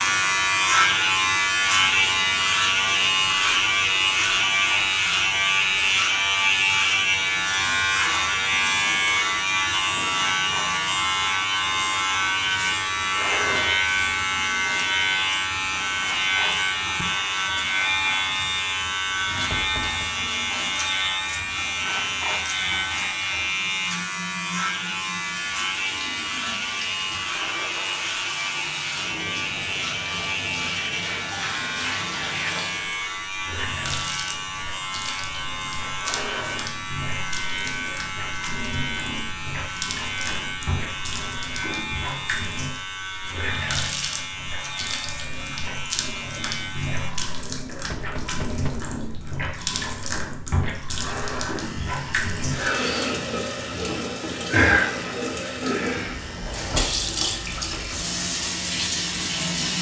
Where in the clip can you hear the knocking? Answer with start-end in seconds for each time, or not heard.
19.5-20.1, 47.9-49.0.